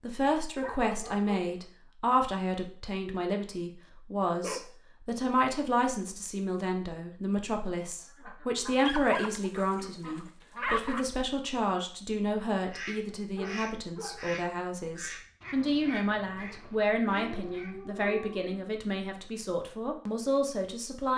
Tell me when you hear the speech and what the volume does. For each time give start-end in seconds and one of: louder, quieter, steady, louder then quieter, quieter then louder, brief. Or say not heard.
0.0-21.1 steady.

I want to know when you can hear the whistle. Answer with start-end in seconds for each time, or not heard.
not heard.